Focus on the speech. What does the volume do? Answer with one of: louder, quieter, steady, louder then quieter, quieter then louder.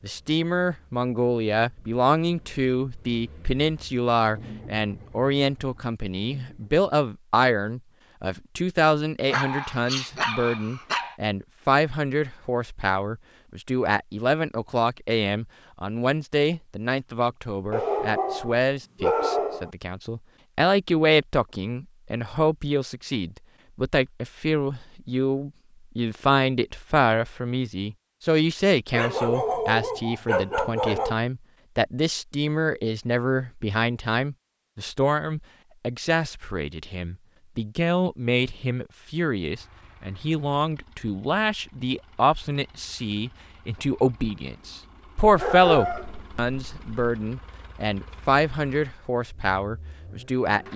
steady.